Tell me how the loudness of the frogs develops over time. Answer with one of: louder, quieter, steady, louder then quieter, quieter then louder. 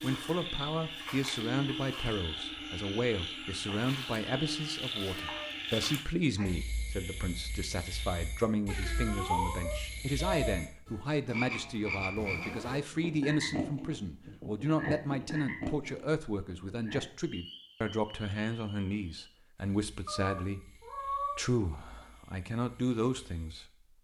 quieter.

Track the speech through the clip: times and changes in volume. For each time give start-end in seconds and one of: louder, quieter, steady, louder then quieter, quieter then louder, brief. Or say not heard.
0.0-23.7 steady.